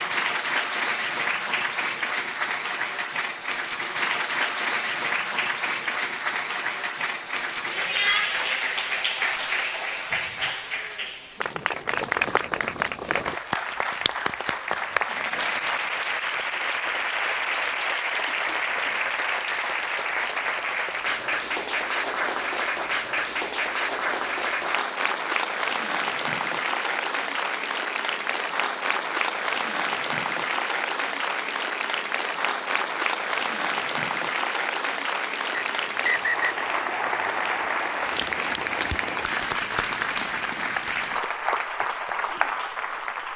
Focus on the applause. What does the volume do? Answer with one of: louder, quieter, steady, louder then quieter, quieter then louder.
steady.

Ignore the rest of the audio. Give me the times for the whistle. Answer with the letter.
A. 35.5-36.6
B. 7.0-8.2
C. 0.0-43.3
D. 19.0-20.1
A.